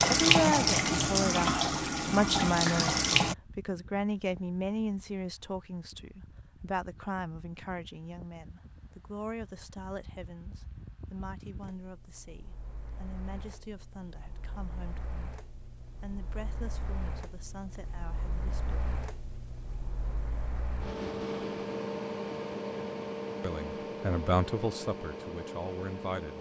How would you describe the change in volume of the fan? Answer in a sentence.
The volume of the fan goes up.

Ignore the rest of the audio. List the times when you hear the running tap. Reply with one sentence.
The running tap can be heard from 0.0 to 3.4 s.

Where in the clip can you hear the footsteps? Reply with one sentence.
The footsteps can't be heard in this clip.